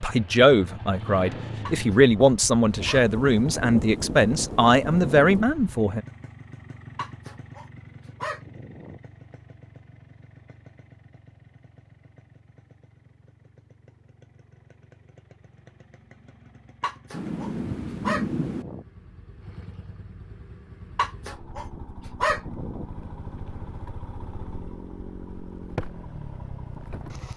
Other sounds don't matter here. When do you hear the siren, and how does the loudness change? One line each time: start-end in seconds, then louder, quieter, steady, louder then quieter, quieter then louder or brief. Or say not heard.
not heard.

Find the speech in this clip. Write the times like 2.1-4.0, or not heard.
0.0-6.0.